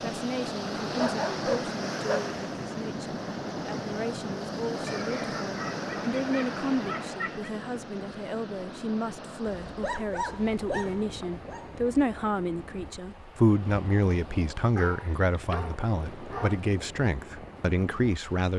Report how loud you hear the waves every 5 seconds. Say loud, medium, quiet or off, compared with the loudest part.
loud, loud, medium, medium.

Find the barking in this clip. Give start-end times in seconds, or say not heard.
0.9-2.3, 4.8-7.5, 9.5-11.7, 14.8-16.6.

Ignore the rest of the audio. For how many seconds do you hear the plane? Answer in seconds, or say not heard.
not heard.